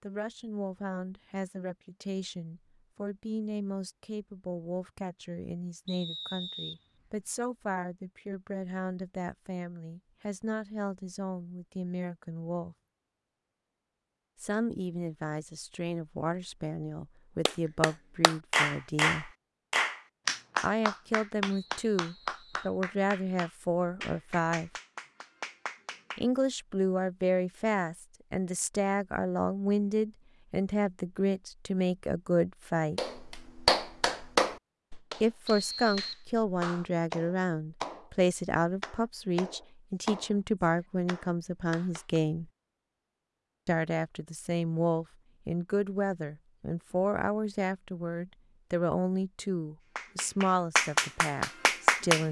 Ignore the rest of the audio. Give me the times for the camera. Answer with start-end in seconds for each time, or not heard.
not heard.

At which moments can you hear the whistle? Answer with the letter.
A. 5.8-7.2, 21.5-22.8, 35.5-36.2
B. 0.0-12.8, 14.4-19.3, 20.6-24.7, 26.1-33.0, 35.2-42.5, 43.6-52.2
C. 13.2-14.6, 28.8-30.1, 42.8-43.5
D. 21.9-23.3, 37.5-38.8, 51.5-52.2
A.